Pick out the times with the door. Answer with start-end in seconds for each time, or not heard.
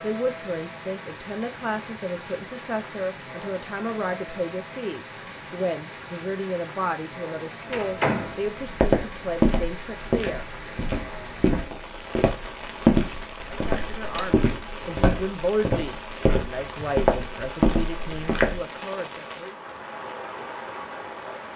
7.7-8.4, 13.5-14.3.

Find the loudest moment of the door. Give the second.
8 s.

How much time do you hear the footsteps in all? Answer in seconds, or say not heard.
10 s.